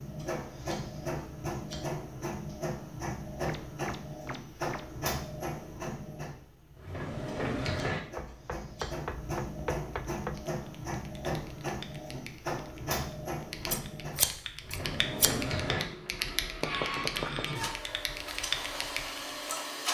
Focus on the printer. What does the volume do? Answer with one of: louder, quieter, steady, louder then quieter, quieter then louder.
steady.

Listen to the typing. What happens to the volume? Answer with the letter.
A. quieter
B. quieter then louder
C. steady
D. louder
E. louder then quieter
D.